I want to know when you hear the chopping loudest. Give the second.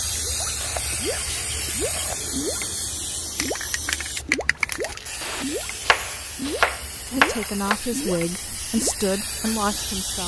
7 s.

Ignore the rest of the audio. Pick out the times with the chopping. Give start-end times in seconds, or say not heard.
0.6-2.2, 5.2-7.8.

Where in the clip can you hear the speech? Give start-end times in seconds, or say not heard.
7.0-10.2.